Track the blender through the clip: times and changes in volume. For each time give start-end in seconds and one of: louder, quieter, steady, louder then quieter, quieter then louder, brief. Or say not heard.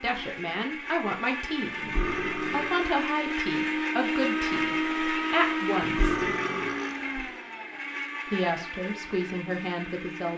0.0-10.3 louder then quieter.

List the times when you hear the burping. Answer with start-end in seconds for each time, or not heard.
1.8-2.9, 5.8-7.2.